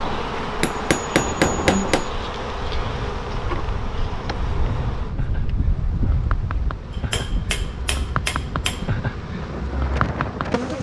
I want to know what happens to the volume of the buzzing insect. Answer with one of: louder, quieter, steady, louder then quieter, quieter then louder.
quieter then louder.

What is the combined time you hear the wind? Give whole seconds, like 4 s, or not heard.
11 s.